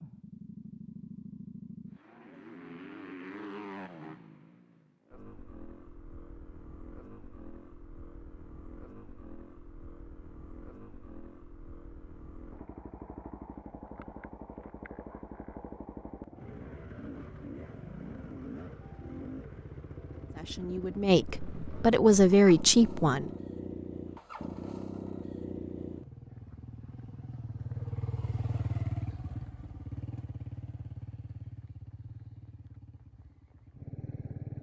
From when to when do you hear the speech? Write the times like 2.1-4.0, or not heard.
20.3-23.3.